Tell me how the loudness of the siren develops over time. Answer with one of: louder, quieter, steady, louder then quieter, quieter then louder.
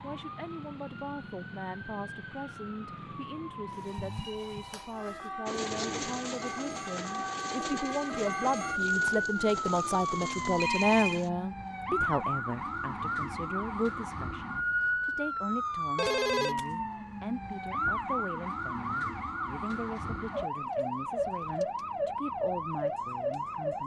louder.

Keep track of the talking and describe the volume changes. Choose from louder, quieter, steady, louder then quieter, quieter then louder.
louder then quieter.